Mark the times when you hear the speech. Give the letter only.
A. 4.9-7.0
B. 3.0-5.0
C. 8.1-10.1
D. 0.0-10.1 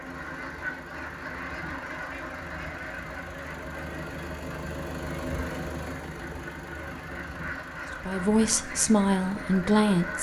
C.